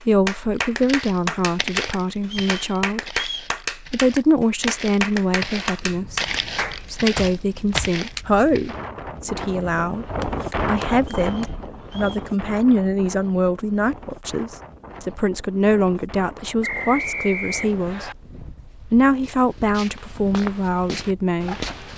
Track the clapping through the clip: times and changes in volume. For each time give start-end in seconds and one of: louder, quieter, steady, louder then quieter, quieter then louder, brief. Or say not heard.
0.0-8.2 steady
10.2-11.7 brief.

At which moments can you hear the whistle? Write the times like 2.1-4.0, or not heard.
2.2-3.5, 11.1-12.3, 16.6-18.1.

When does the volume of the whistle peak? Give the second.
17 s.